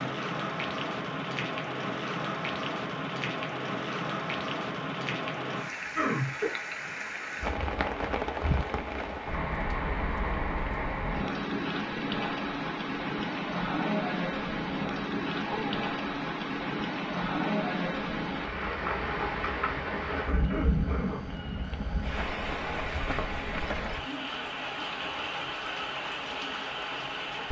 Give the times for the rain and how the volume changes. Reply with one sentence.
The rain can be heard from 0.0 to 27.4 s, at a steady volume.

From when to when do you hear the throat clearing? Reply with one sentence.
You can hear the throat clearing from 6.0 to 6.5 s, from 15.4 to 15.8 s and from 19.9 to 21.4 s.